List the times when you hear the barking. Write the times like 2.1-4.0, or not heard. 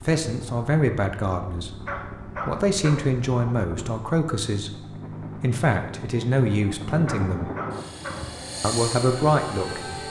1.9-3.1, 7.0-8.3.